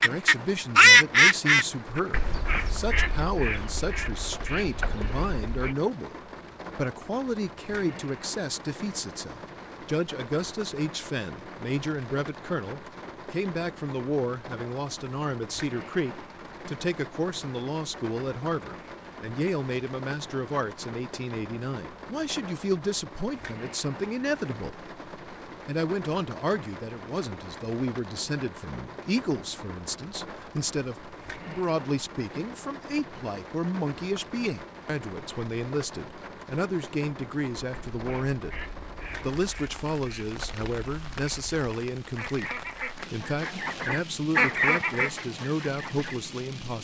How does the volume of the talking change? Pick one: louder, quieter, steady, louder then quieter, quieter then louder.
steady.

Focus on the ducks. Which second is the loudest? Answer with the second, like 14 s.
1 s.